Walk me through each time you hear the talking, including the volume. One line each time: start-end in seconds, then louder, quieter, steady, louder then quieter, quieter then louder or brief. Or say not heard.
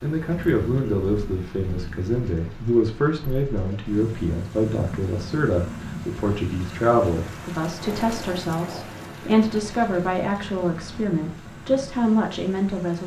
0.0-13.0 steady.